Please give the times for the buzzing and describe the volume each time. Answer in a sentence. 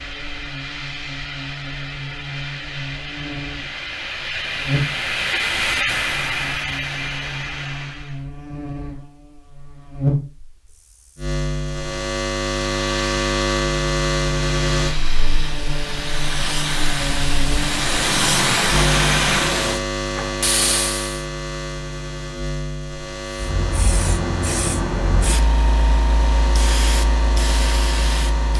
You can hear the buzzing from 0.0 to 28.5 s, getting louder then quieter.